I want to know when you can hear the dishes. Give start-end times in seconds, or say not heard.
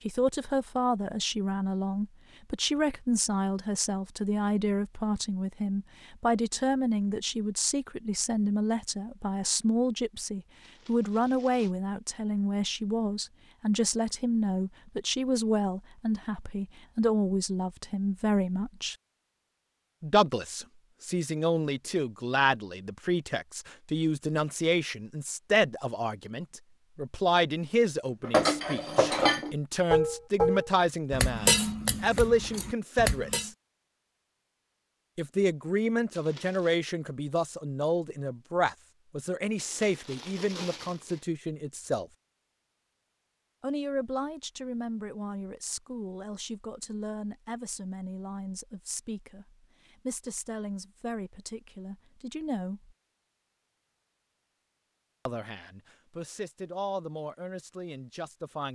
28.2-33.5.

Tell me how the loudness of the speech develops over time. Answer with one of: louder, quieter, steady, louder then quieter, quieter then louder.
quieter.